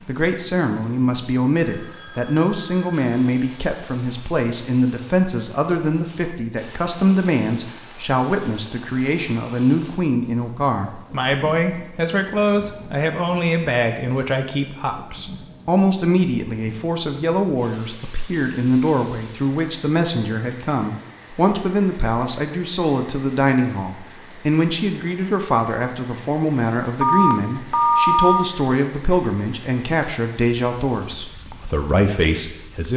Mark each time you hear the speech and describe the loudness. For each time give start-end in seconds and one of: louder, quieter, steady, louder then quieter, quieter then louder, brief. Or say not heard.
0.1-32.9 steady.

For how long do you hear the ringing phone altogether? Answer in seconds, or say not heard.
3 s.